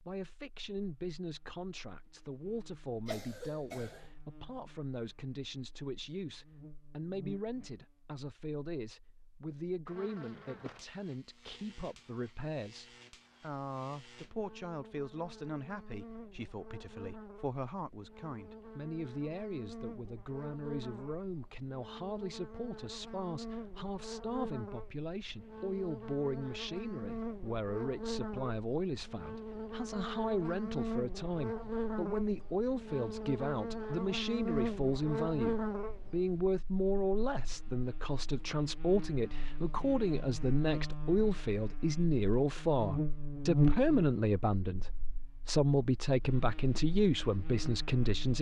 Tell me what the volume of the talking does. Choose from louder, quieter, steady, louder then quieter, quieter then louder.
louder.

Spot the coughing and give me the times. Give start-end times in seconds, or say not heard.
3.0-4.1.